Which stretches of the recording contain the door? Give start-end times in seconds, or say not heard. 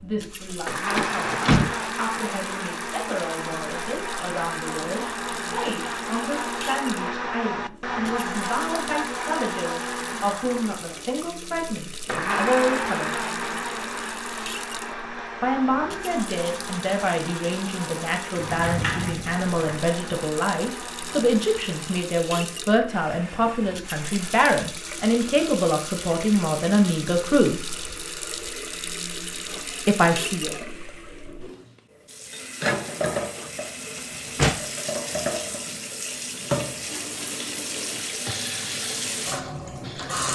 0.9-1.8, 18.4-19.6, 34.0-34.6.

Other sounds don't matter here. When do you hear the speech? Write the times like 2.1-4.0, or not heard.
0.0-13.2, 15.4-27.6, 29.9-30.6.